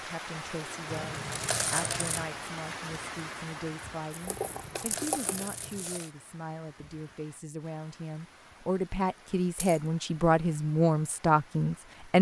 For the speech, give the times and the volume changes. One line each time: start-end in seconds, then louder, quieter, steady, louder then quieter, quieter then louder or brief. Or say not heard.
0.0-12.1 louder.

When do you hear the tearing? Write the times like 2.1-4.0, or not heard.
4.1-5.7.